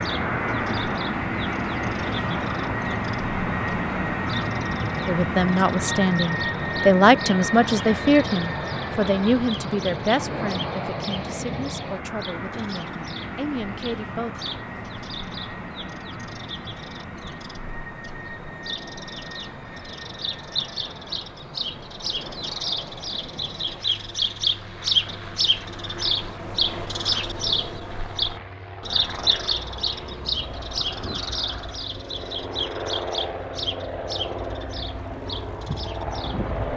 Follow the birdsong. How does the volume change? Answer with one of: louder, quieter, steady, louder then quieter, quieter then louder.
louder then quieter.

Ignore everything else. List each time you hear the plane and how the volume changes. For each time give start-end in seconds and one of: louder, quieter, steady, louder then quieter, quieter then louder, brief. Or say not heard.
0.0-36.7 quieter then louder.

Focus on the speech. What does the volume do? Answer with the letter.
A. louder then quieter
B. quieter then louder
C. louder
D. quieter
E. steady
D.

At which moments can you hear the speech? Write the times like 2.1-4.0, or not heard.
5.0-14.4.